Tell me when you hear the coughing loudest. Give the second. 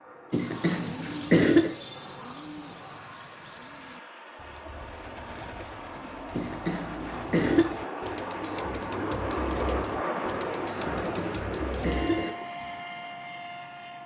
1 s.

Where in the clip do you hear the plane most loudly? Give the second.
10 s.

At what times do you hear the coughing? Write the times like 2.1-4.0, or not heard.
0.3-1.8, 6.3-7.7, 10.8-12.3.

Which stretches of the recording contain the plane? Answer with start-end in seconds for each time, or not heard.
0.0-14.0.